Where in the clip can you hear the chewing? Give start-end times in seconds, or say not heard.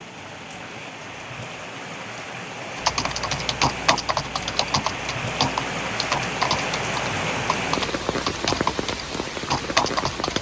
not heard.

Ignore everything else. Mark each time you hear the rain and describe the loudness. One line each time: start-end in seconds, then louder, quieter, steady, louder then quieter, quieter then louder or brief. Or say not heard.
0.0-10.3 louder.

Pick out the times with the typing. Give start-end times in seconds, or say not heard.
2.8-10.3.